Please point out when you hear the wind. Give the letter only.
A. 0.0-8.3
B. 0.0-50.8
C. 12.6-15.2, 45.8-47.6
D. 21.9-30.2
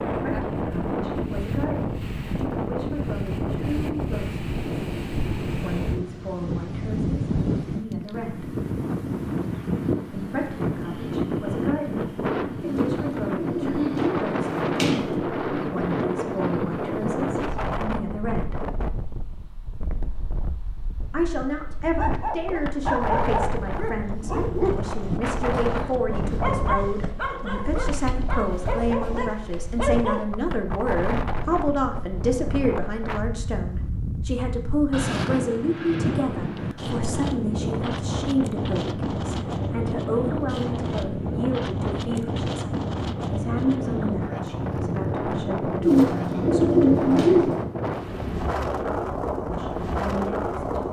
B.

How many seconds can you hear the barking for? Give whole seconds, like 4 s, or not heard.
8 s.